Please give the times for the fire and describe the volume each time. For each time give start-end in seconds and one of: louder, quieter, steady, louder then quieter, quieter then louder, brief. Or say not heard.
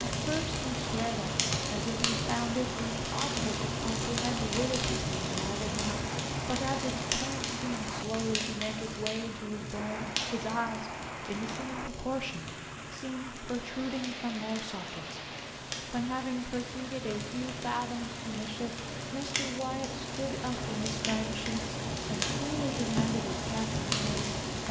0.0-24.6 quieter then louder.